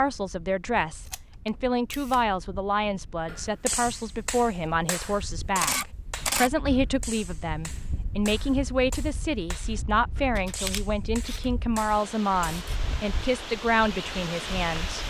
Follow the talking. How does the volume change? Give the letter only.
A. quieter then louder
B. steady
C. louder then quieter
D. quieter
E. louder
B.